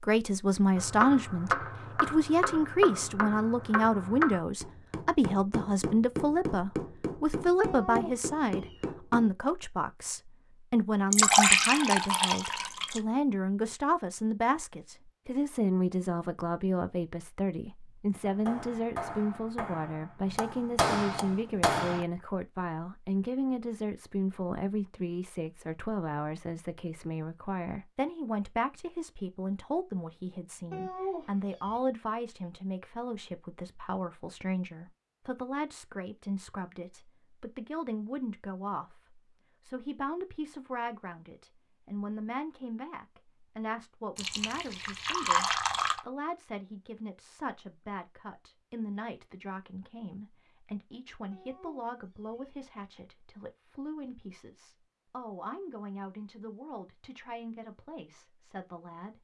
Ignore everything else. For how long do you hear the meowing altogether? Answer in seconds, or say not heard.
3 s.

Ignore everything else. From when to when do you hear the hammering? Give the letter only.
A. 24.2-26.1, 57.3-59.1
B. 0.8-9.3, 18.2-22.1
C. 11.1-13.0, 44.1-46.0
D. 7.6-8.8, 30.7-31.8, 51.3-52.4
B.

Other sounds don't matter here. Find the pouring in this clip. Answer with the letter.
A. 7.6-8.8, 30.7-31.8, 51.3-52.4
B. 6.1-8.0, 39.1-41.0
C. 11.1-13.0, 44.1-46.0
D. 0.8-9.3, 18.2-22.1
C.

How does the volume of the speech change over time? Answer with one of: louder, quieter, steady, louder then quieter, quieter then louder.
quieter.